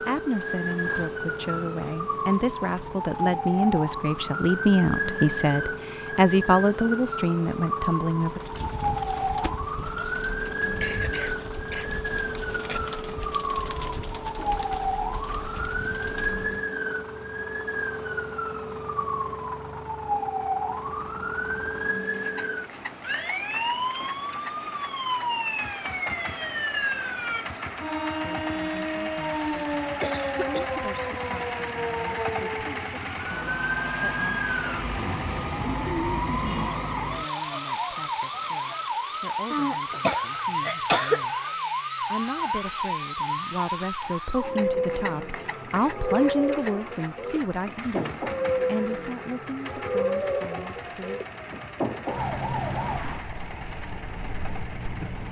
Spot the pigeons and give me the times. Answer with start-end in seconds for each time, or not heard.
8.2-16.6.